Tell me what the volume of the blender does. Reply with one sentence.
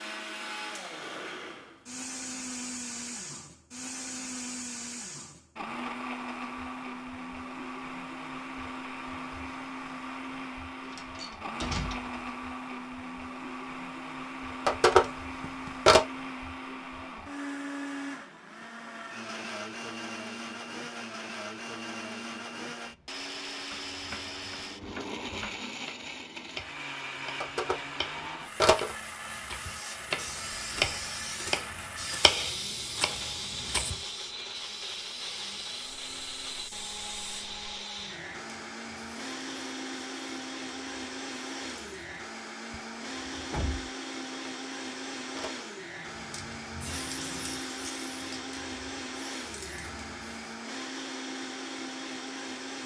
The loudness of the blender stays about the same.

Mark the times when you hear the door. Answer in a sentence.
The door can be heard from 10.9 to 12.2 s and from 42.7 to 43.9 s.